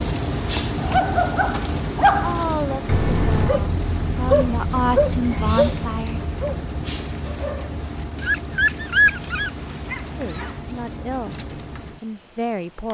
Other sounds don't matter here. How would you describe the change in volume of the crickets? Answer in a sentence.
The loudness of the crickets goes down.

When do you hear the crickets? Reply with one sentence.
You can hear the crickets from 0.0 to 12.8 s.